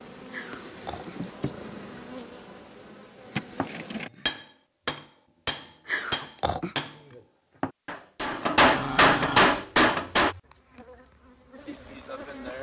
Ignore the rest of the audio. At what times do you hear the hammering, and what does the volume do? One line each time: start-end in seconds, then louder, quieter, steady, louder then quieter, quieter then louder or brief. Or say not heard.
3.5-10.3 louder.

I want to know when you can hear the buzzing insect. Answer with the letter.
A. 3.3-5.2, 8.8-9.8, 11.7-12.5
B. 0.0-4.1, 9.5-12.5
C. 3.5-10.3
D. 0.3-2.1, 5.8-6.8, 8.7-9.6
B.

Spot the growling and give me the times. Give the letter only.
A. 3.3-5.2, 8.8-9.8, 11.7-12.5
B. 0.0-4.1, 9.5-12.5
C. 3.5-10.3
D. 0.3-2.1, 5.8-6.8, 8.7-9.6
D.